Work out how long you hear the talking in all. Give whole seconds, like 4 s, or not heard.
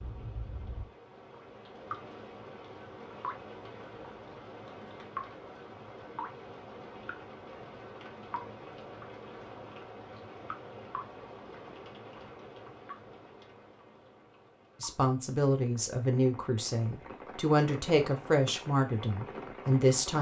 5 s.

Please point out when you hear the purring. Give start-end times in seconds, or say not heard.
not heard.